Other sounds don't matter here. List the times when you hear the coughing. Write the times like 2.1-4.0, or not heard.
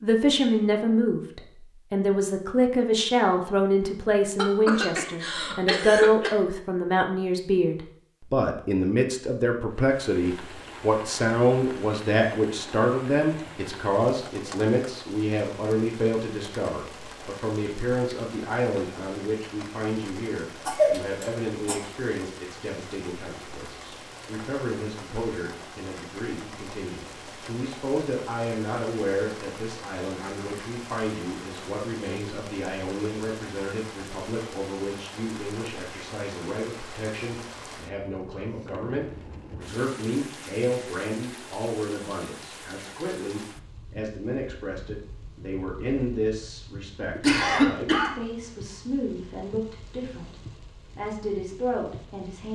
4.3-6.3, 20.6-21.8, 47.1-48.1.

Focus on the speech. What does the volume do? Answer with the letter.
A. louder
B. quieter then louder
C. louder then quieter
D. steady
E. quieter
E.